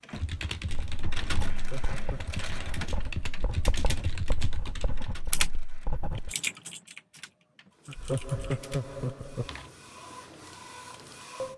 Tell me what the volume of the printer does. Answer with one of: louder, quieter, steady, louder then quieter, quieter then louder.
quieter then louder.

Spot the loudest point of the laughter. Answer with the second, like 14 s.
8 s.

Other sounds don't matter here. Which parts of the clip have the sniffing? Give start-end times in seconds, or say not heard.
not heard.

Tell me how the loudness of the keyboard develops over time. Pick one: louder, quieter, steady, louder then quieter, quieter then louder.
louder then quieter.